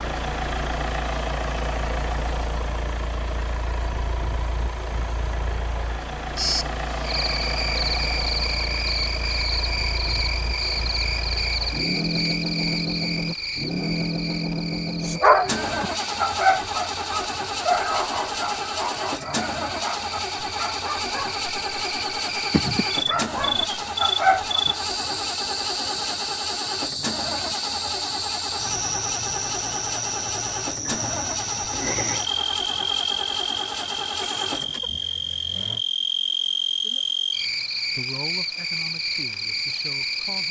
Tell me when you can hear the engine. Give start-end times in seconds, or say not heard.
0.0-35.9.